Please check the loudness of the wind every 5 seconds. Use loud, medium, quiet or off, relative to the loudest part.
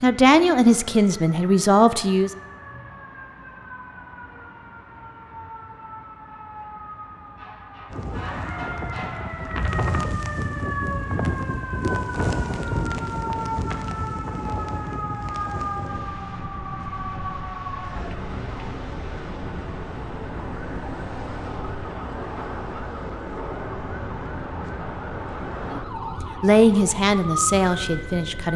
off, loud, loud, medium, medium, medium.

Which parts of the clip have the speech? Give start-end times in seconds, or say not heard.
0.0-2.3, 25.7-28.5.